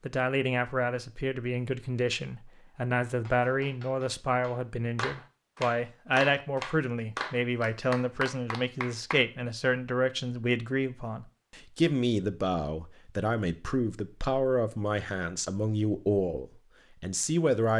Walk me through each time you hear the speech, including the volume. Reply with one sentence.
You can hear the speech from 0.0 to 17.7 s, at a steady volume.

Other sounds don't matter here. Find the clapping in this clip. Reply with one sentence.
You can hear the clapping from 3.2 to 9.2 s.